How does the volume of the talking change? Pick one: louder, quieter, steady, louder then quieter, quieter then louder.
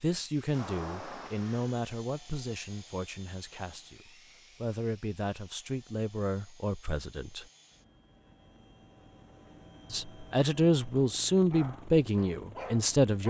quieter then louder.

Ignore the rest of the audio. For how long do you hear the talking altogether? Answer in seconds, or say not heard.
11 s.